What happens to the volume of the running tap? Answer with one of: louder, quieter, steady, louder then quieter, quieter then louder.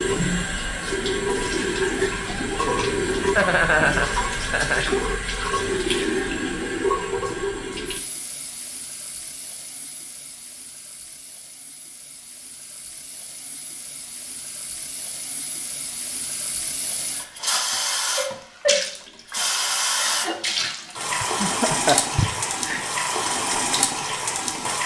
quieter then louder.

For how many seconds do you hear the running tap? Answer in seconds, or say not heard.
25 s.